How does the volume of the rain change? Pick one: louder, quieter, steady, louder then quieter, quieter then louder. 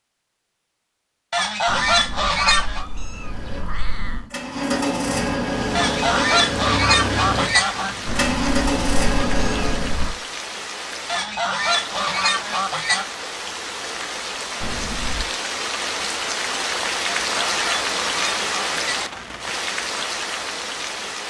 louder.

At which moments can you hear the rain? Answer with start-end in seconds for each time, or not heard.
5.5-21.2.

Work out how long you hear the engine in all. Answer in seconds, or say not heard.
7 s.